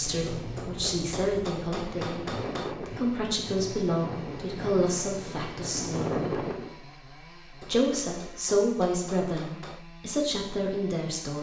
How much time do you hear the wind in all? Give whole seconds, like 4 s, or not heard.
7 s.